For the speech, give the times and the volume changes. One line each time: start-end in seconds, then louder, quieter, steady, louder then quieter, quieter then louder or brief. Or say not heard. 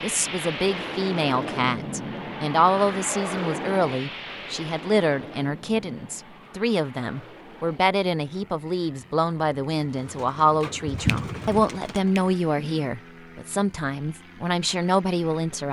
0.0-15.6 steady.